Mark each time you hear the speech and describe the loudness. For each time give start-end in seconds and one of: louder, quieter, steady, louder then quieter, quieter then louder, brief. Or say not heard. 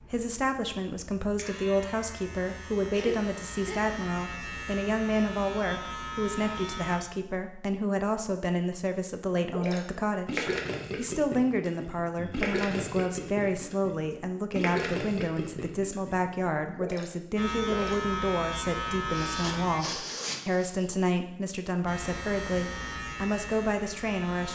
0.1-24.5 steady.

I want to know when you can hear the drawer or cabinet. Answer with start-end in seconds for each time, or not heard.
not heard.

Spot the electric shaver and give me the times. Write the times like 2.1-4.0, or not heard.
0.0-7.0, 17.4-19.8, 21.9-24.5.